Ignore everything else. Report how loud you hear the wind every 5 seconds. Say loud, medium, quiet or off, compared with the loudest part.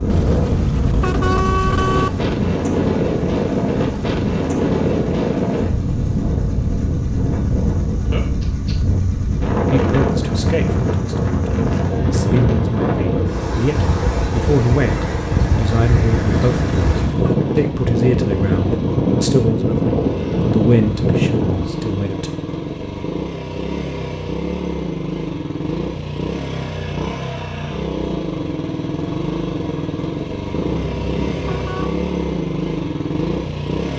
loud, loud, loud, loud, loud, off, off.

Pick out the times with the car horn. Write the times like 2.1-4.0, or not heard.
0.1-2.1, 16.3-17.4, 30.6-31.9.